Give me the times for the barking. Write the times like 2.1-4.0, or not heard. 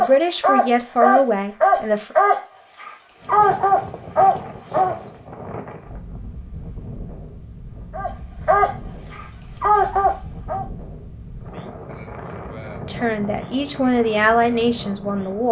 0.0-5.0, 7.9-10.7.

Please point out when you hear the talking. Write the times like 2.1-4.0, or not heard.
0.0-2.1, 12.8-15.4.